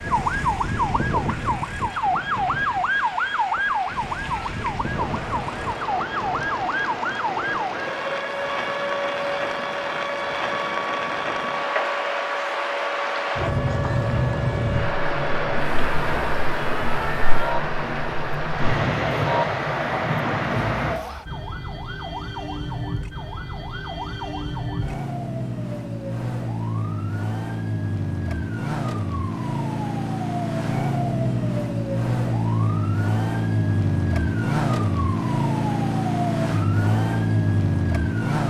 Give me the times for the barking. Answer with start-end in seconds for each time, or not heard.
not heard.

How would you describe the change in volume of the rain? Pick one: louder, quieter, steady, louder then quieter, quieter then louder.
louder.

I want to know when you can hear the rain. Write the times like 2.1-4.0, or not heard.
0.0-21.0.